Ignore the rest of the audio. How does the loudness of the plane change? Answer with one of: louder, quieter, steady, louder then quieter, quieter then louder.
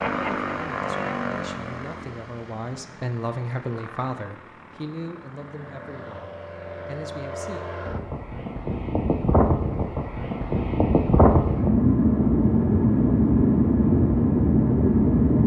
quieter then louder.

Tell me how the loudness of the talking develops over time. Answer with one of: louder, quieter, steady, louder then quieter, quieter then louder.
louder then quieter.